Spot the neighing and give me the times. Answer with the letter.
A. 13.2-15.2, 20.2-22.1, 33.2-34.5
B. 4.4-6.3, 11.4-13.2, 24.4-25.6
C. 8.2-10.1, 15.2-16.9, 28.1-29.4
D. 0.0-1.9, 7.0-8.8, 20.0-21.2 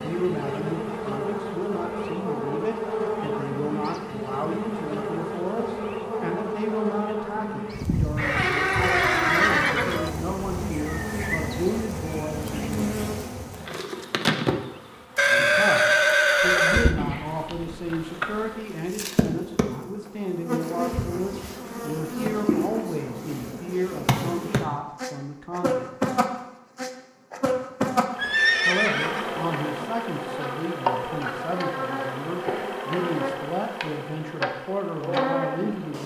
C.